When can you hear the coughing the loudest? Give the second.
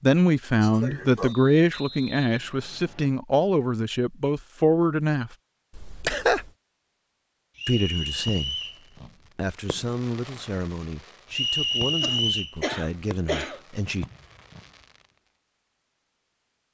6 s.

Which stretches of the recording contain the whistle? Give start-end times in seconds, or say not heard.
1.2-3.1, 7.5-8.8, 11.3-12.6.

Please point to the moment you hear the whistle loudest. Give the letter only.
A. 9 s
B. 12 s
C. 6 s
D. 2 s
B.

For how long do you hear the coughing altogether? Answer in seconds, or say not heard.
3 s.